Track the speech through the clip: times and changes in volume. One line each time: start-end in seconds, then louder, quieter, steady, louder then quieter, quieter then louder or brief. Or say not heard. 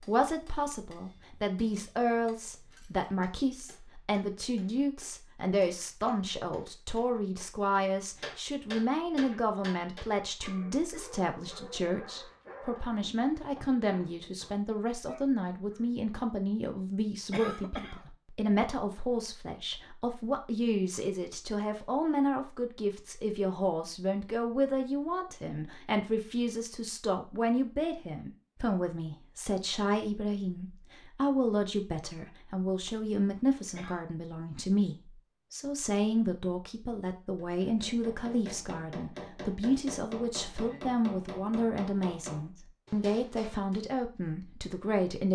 0.1-45.3 steady.